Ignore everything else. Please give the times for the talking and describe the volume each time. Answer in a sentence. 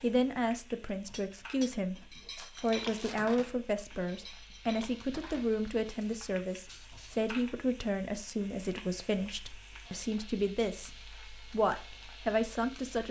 The talking can be heard from 0.0 to 13.0 s, at a steady volume.